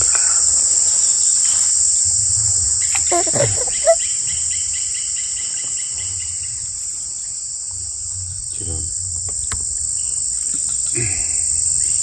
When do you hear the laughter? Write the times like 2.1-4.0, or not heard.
3.1-4.0.